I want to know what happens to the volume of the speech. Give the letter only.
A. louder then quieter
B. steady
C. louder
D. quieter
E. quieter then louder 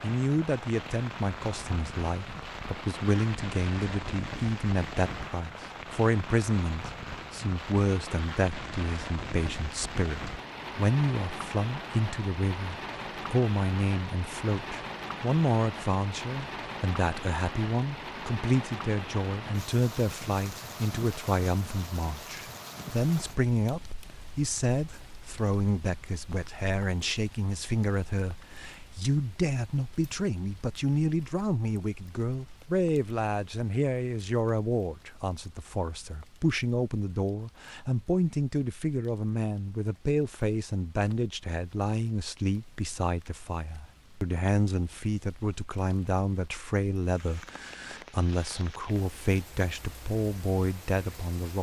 B.